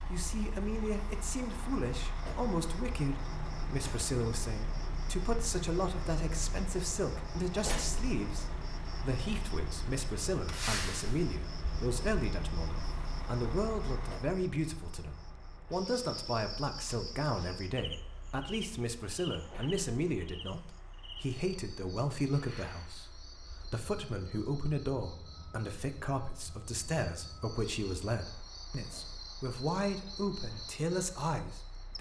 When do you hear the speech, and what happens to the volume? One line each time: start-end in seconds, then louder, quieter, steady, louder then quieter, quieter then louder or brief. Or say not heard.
0.1-31.9 steady.